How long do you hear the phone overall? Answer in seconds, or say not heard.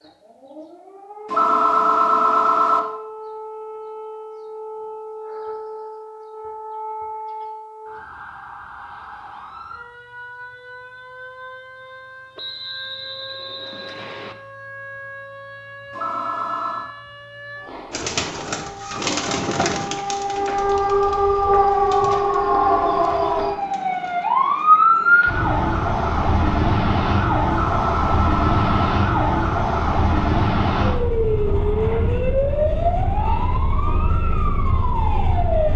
4 s.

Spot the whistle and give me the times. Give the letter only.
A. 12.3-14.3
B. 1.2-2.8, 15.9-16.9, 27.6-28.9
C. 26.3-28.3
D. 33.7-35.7
A.